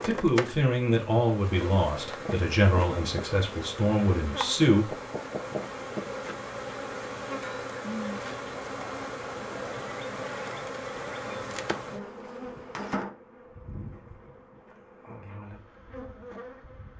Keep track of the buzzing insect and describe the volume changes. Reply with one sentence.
The volume of the buzzing insect goes down.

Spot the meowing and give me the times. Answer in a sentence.
You can't hear the meowing here.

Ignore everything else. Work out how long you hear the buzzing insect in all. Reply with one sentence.
You can hear the buzzing insect for 17 seconds altogether.